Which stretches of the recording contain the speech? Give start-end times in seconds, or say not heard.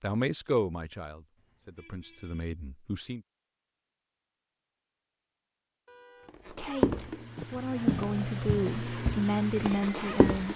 0.0-3.2, 6.5-10.5.